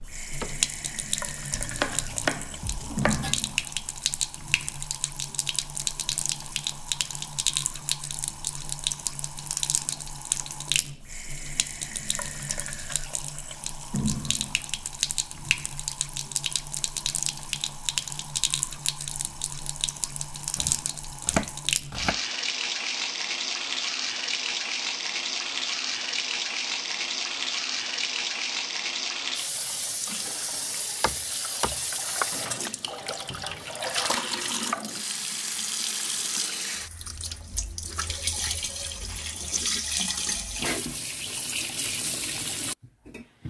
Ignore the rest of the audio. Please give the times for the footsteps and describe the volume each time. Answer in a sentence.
You can't hear the footsteps here.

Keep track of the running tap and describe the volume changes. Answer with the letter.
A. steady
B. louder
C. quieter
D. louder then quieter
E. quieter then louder
A.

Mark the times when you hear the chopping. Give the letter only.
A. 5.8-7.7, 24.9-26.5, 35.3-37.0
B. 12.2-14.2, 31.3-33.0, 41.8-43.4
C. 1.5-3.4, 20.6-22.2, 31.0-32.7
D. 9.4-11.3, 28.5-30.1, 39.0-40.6
C.